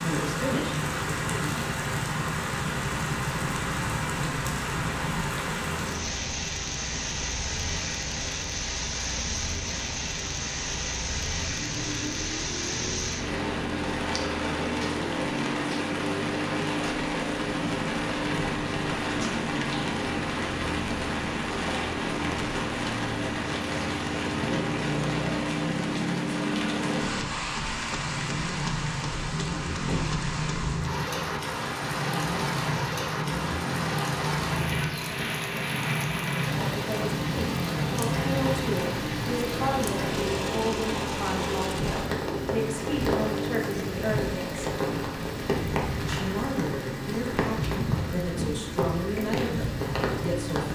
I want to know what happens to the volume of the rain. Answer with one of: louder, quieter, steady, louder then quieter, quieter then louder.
steady.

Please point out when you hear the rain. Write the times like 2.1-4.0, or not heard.
0.0-50.7.